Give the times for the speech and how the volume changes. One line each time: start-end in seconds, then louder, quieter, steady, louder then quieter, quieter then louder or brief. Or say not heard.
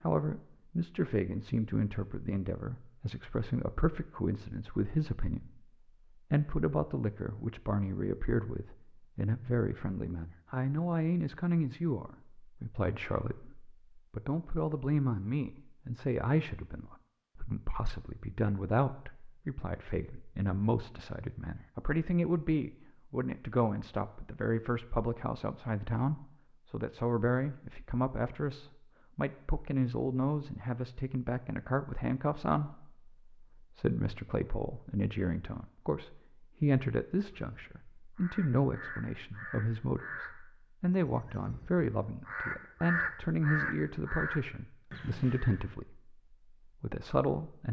0.0-47.6 steady.